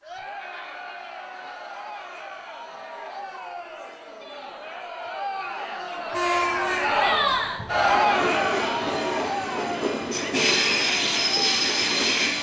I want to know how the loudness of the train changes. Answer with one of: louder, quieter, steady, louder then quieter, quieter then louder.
louder.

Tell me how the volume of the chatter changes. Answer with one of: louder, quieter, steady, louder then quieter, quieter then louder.
louder then quieter.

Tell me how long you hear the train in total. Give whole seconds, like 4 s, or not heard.
6 s.